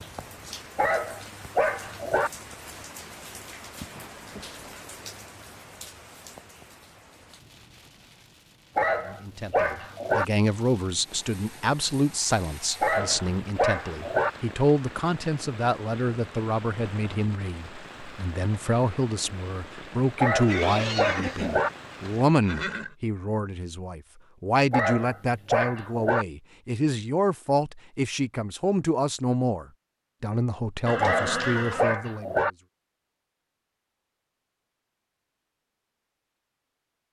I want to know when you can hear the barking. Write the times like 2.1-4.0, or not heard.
0.8-2.3, 8.8-10.2, 12.8-14.3, 20.2-21.7, 24.7-26.2, 31.0-32.5.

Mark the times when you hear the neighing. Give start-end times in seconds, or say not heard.
3.8-4.6, 20.4-22.9, 30.9-32.0.